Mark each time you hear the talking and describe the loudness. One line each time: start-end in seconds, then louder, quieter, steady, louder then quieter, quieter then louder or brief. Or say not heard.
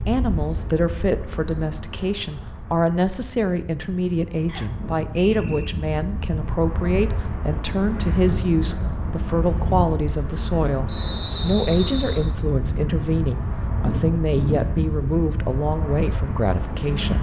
0.1-17.1 steady.